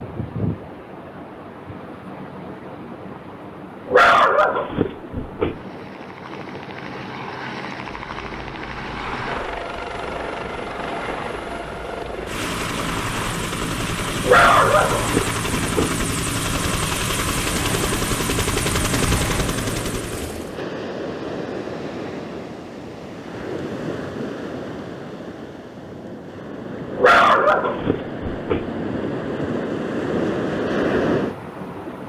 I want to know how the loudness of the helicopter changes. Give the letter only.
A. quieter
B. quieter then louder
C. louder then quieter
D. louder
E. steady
D.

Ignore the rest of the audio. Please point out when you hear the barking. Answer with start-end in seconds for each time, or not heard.
3.9-5.5, 14.2-15.9, 26.9-28.6.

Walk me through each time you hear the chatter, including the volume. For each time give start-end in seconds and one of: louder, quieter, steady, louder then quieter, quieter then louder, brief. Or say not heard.
not heard.